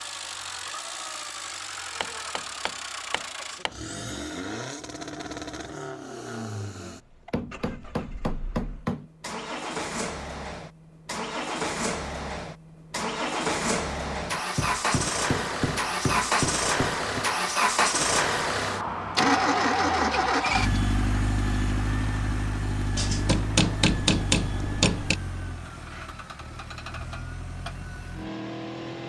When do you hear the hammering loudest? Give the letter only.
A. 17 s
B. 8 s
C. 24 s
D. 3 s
C.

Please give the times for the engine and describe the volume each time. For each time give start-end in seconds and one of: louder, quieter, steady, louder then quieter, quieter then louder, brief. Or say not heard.
0.0-29.0 louder then quieter.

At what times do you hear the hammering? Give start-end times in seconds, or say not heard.
2.0-3.7, 7.3-9.1, 14.6-17.2, 22.9-25.2.